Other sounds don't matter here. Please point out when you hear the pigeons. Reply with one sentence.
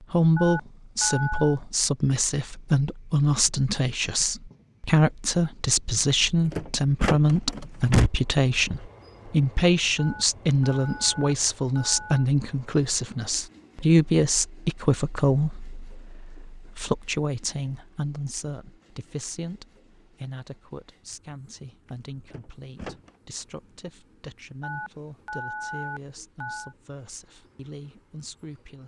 The pigeons can't be heard in this clip.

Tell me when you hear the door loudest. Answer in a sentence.
The loudest moment of the door is at 8 seconds.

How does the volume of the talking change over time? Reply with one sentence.
The volume of the talking goes down.